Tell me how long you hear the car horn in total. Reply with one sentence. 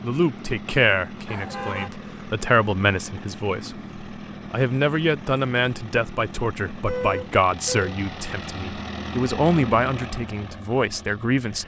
You can hear the car horn for 2 seconds altogether.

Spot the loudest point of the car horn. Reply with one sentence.
The loudest moment of the car horn is at 7 seconds.